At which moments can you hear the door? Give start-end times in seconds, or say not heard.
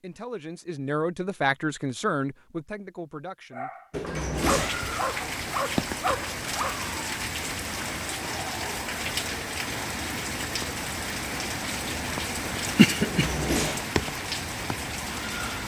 3.9-4.8, 13.0-13.8.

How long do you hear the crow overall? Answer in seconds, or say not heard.
not heard.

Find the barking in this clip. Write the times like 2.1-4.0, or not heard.
3.5-6.8.